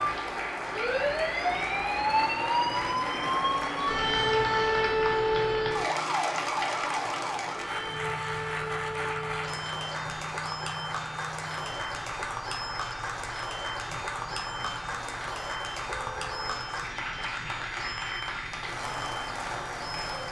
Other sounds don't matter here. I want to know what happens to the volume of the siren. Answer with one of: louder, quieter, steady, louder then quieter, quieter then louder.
quieter.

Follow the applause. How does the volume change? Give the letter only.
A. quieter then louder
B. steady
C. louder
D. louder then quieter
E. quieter
B.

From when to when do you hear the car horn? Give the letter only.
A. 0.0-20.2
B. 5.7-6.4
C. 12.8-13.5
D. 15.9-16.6
D.